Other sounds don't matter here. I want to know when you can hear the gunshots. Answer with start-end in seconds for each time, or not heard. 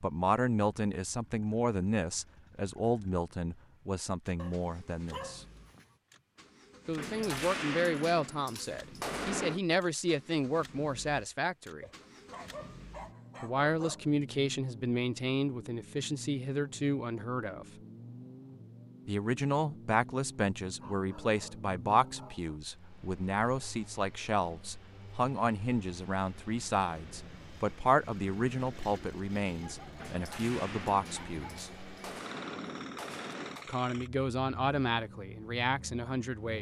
7.0-9.6, 29.9-33.7.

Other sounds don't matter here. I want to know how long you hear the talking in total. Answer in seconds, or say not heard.
30 s.